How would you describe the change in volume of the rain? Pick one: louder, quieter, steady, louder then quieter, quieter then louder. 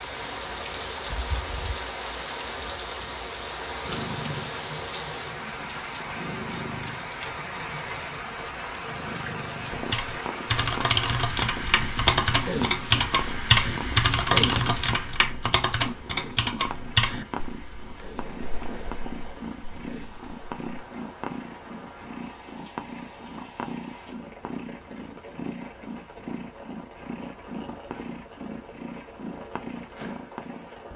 quieter.